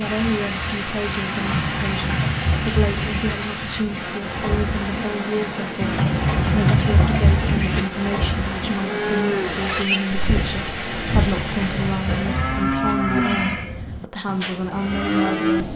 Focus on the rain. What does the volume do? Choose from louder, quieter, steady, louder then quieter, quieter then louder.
steady.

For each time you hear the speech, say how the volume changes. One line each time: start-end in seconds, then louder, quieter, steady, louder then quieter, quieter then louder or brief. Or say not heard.
0.0-15.7 steady.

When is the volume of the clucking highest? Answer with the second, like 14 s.
7 s.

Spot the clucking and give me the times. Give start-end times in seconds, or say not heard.
1.3-3.4, 5.8-7.8, 10.9-12.9.